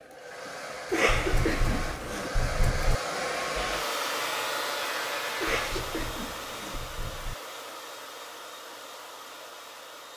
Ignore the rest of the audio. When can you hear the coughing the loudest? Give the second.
1 s.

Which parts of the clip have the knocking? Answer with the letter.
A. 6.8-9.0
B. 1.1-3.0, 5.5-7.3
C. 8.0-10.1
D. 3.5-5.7
B.